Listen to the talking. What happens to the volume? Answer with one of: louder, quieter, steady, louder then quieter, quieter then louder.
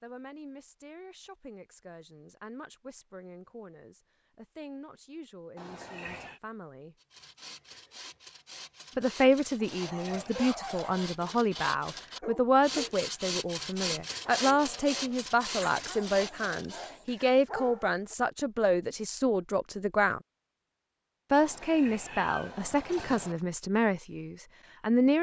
louder.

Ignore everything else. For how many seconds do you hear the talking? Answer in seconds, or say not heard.
22 s.